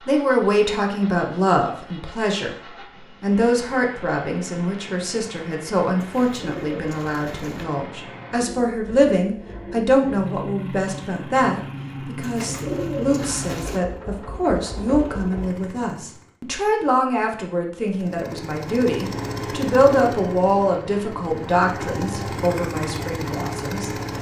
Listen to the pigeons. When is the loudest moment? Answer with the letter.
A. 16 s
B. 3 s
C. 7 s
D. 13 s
D.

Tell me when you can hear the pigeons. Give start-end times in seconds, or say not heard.
6.0-7.7, 12.2-13.8.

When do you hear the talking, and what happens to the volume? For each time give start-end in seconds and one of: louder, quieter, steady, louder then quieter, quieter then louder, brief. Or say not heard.
0.1-23.9 steady.